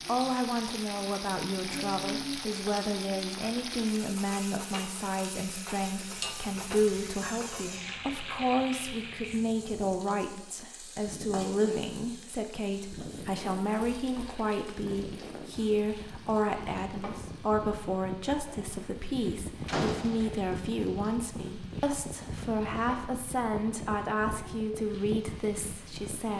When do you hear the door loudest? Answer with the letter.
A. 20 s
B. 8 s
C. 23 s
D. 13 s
A.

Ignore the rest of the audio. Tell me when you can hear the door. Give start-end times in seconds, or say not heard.
6.8-8.0, 19.6-20.3.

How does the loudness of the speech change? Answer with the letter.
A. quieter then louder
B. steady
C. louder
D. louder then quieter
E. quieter
B.